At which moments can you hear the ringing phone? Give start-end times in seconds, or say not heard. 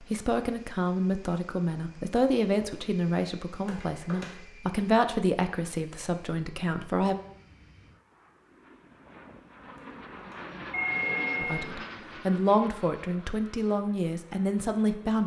3.6-4.5, 9.8-11.7.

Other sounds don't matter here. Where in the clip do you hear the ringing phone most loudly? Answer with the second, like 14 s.
11 s.